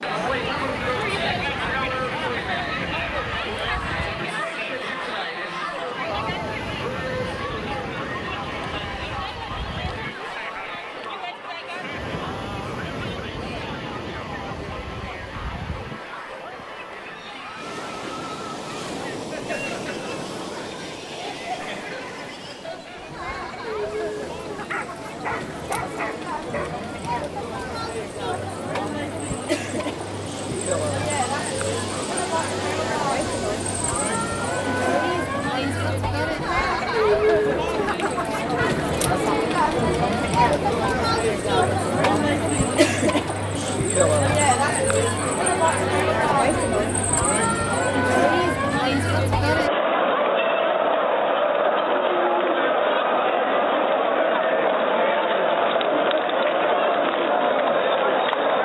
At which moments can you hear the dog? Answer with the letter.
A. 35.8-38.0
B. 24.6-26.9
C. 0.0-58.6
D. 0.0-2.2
B.